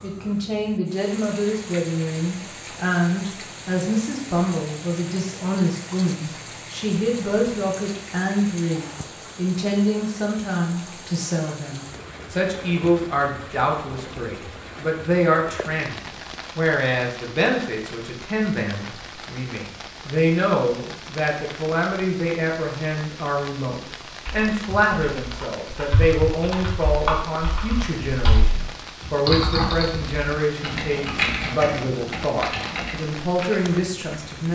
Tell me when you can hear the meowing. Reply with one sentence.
You can't hear the meowing here.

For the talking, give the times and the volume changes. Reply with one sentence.
The talking can be heard from 0.0 to 34.5 s, at a steady volume.